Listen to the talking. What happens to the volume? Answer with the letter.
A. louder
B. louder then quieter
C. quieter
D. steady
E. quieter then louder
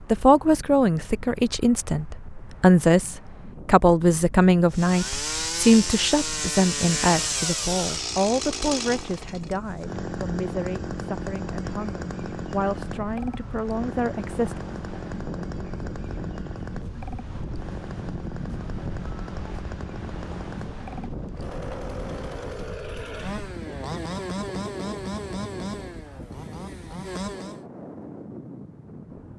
C.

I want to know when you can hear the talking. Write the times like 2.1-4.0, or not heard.
0.1-14.6.